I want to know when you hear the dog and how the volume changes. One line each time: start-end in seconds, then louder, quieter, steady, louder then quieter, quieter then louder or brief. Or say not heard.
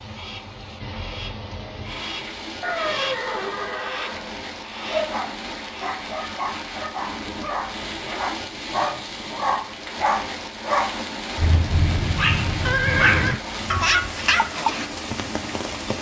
4.8-14.9 louder.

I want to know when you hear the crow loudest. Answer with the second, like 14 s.
3 s.